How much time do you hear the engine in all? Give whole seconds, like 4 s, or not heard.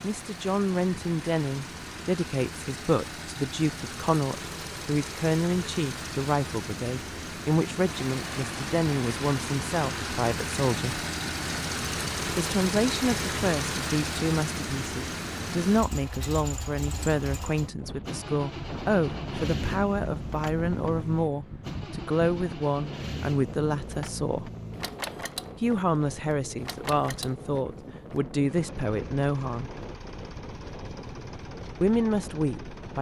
33 s.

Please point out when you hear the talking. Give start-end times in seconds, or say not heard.
0.0-11.0, 12.2-24.5, 25.6-29.7, 31.8-32.9.